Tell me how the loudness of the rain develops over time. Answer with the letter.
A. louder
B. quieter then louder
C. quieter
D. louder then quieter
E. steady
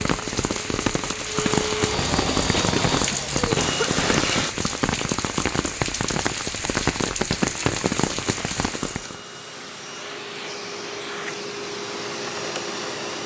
E.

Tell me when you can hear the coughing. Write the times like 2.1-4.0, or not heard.
2.5-4.5.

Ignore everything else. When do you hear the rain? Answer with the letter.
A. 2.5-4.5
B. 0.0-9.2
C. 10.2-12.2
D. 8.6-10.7
B.